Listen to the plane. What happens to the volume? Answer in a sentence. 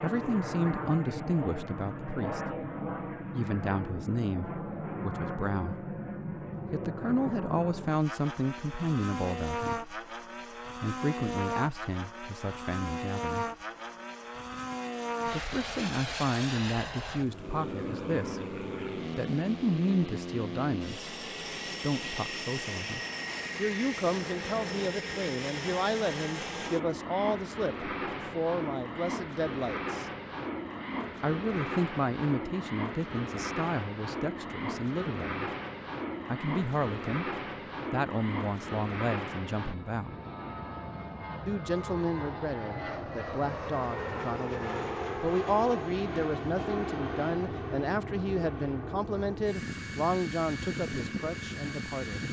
The volume of the plane stays about the same.